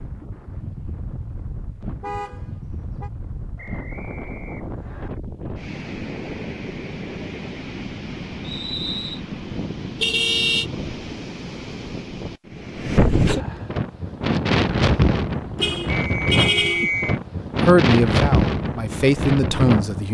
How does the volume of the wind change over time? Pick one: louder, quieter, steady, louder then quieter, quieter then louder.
louder.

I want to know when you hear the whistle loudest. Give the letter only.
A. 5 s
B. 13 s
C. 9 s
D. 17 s
D.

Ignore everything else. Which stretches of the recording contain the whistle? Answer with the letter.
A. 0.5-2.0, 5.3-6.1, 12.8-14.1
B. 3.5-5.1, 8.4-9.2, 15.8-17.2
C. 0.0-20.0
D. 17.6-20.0
B.